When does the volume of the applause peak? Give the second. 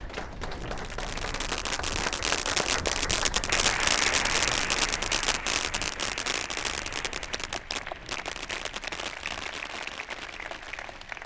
4 s.